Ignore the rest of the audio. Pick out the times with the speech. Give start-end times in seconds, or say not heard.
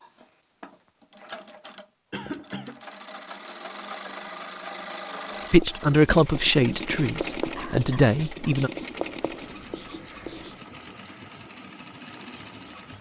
5.5-8.7.